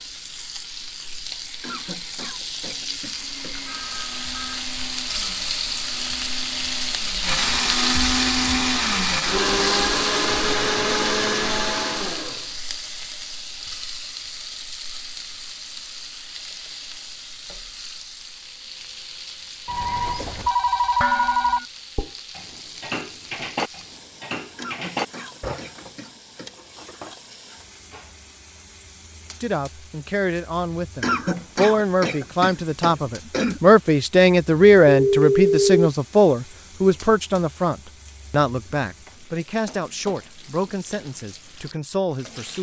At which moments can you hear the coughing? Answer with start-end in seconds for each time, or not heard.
1.6-3.5, 24.6-26.5, 31.0-33.6.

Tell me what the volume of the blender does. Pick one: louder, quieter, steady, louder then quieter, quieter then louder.
louder.